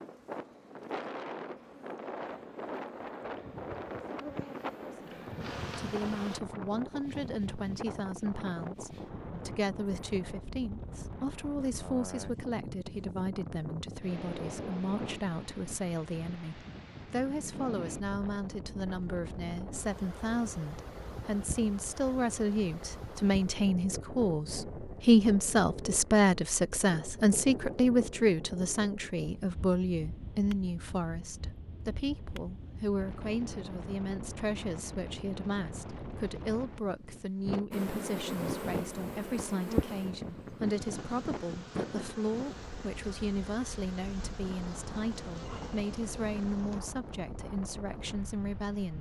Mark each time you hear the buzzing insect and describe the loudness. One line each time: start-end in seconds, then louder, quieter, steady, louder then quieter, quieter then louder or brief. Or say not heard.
0.0-6.4 louder
37.7-46.8 quieter.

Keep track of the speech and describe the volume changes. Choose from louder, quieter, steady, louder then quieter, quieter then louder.
louder then quieter.